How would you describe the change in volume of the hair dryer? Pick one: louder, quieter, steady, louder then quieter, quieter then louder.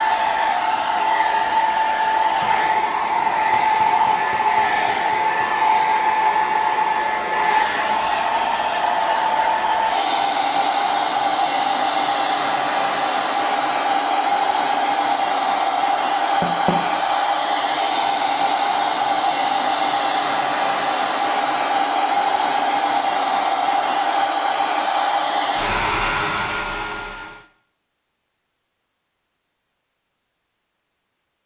steady.